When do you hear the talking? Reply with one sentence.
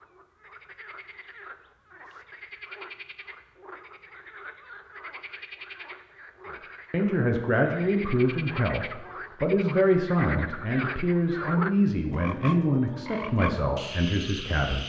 You can hear the talking from 6.9 to 14.8 s.